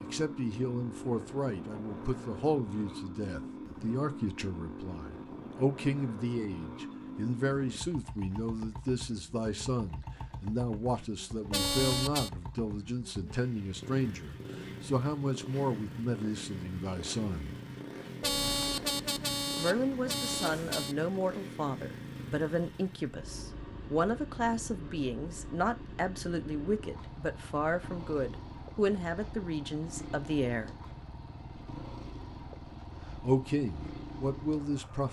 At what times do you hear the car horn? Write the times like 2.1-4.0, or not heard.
11.5-12.3, 18.2-20.9.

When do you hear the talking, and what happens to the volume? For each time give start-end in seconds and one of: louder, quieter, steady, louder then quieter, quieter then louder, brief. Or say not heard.
0.0-17.6 steady
19.6-30.7 steady
33.2-35.0 brief.